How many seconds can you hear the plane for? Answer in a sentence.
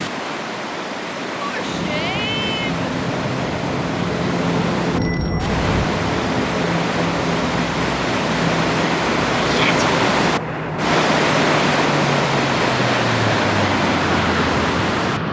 You can hear the plane for 14 seconds altogether.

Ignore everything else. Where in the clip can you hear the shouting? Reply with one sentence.
The shouting can be heard from 1.4 to 2.8 s and from 9.4 to 9.8 s.